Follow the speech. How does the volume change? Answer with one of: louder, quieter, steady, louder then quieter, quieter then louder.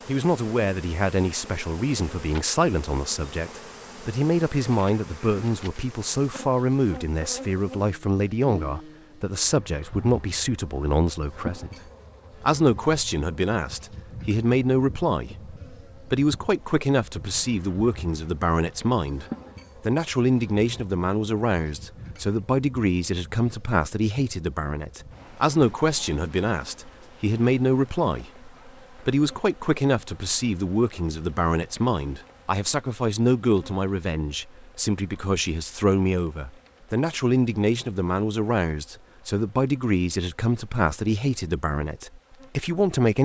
steady.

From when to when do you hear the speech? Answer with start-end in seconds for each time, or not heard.
0.1-11.7, 12.4-43.2.